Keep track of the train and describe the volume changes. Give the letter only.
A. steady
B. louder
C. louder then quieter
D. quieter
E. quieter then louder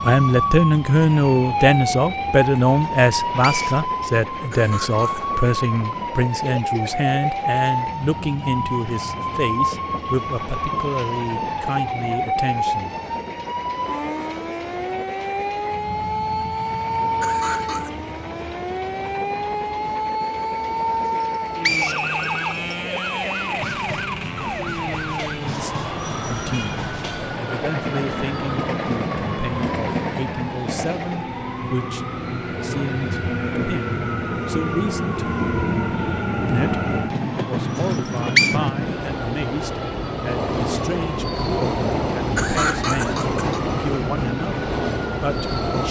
B.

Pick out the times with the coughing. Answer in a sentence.
The coughing can be heard from 4.5 to 5.3 s, from 17.2 to 17.9 s and from 42.4 to 43.6 s.